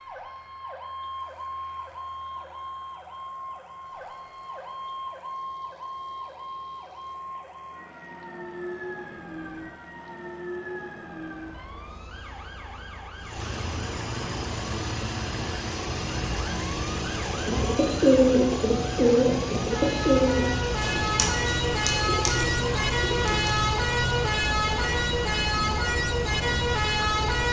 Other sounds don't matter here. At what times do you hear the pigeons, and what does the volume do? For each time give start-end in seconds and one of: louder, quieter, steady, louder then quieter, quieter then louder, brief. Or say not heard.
17.4-23.6 quieter.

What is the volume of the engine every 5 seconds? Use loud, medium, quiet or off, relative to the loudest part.
quiet, quiet, medium, loud, loud, loud.